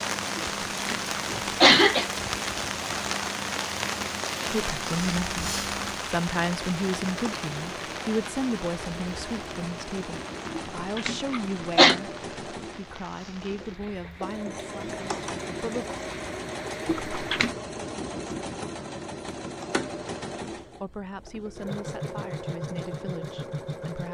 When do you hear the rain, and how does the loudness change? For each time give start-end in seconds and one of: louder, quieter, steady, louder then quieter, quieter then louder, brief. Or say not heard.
0.0-17.4 quieter.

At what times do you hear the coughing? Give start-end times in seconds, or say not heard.
0.3-2.0, 10.6-11.9, 16.9-17.5.